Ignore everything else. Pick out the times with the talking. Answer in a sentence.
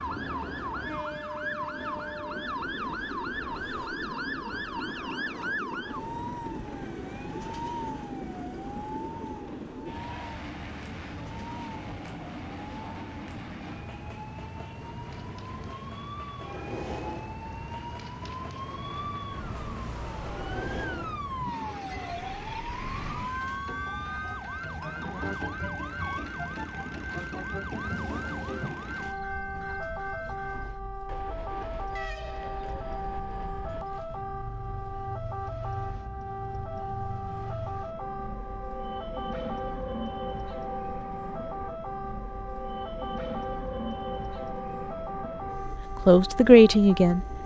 You can hear the talking from 46.0 to 47.2 s.